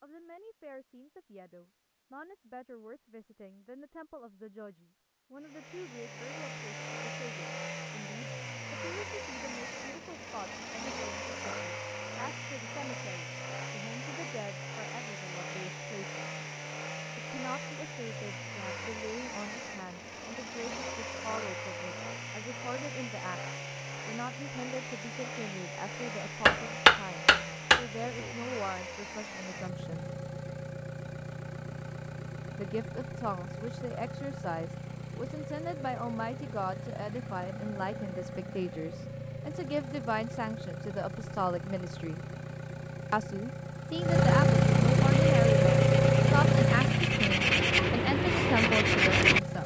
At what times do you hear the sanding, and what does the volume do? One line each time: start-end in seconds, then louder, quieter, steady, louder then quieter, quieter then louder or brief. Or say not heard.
45.0-49.4 louder.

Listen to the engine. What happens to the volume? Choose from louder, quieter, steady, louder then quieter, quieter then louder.
louder.